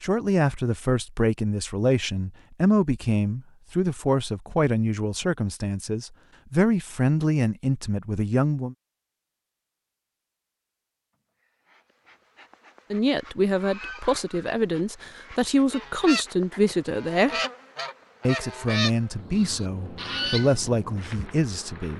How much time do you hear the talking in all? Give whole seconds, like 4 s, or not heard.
17 s.